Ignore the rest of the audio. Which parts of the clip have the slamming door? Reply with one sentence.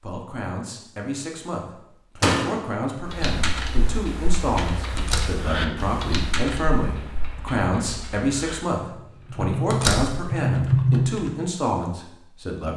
You can hear the slamming door from 2.2 to 2.6 s, from 5.0 to 5.5 s and from 9.7 to 10.2 s.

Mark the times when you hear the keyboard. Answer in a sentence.
You can hear the keyboard from 3.0 to 11.3 s.